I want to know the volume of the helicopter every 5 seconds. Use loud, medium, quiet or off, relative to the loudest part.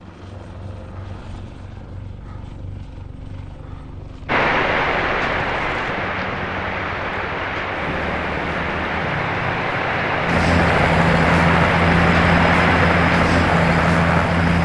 quiet, quiet, loud.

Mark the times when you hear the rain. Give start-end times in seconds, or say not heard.
4.2-14.6.